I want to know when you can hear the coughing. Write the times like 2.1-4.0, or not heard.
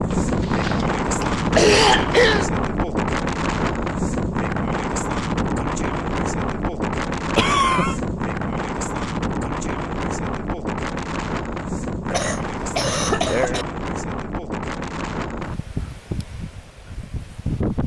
0.1-2.5, 7.3-8.0, 12.1-13.7.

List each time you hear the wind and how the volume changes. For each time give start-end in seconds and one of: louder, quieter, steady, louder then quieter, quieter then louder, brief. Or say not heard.
0.0-17.8 quieter.